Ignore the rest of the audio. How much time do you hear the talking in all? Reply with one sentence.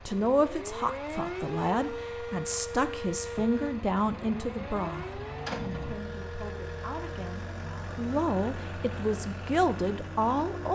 You can hear the talking for 11 seconds altogether.